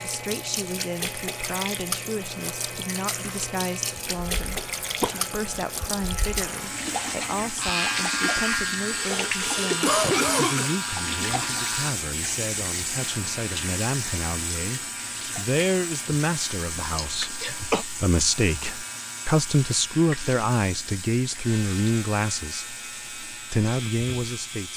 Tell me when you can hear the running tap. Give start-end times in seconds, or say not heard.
0.0-24.7.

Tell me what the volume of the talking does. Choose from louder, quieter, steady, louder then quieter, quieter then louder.
louder.